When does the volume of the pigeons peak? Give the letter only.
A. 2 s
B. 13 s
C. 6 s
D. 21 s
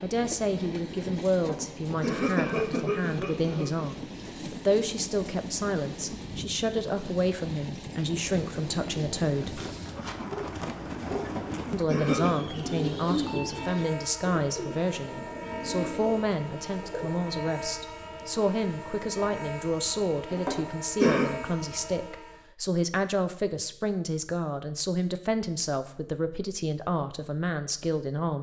B.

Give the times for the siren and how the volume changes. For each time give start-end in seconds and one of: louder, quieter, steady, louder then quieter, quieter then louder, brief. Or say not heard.
not heard.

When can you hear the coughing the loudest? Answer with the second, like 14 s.
21 s.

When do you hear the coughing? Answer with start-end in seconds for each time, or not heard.
1.3-3.6, 11.2-12.3, 20.3-21.2.